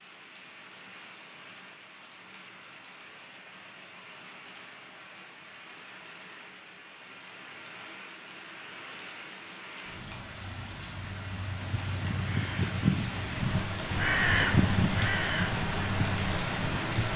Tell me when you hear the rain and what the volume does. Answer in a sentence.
The rain can be heard from 0.0 to 17.1 s, getting louder.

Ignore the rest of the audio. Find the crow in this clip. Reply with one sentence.
The crow can be heard from 11.6 to 17.1 s.